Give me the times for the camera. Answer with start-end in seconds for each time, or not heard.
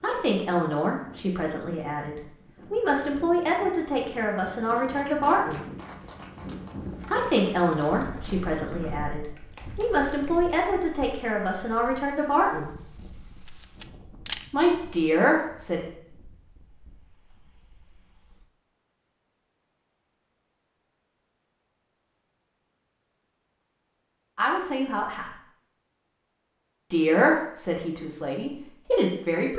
13.4-14.4.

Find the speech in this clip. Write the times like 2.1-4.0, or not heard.
0.0-5.7, 7.1-12.7, 14.5-15.8, 24.4-25.3, 26.9-29.5.